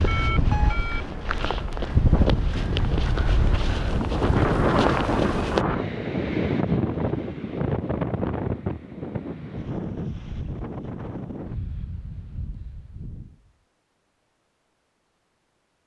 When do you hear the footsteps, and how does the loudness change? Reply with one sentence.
You can hear the footsteps from 0.0 to 5.7 s, getting louder.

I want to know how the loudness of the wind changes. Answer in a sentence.
The loudness of the wind goes down.